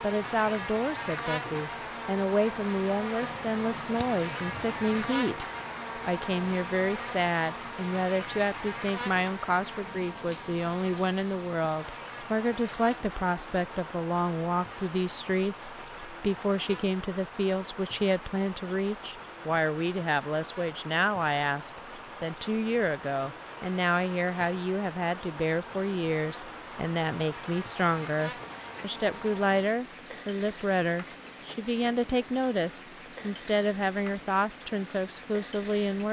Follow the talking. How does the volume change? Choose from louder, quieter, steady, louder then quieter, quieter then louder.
steady.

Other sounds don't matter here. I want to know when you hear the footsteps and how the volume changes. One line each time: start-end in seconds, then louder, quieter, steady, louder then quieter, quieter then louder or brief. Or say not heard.
not heard.